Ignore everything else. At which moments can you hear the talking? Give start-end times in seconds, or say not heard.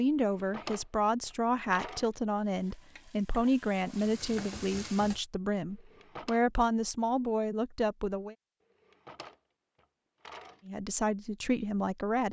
0.0-8.3, 10.7-12.2.